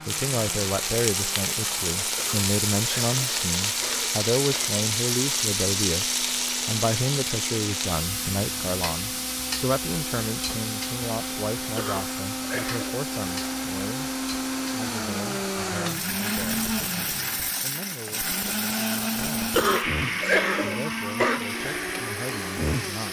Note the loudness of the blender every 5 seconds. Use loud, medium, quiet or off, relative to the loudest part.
quiet, medium, loud, loud, loud.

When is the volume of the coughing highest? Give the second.
20 s.